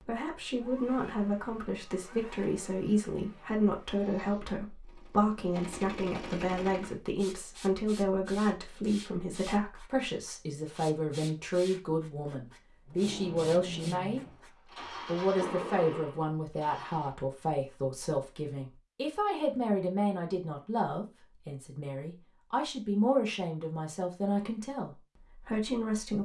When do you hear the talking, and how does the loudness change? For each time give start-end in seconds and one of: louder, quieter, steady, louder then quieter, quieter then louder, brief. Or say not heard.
0.0-14.2 steady
15.1-26.2 steady.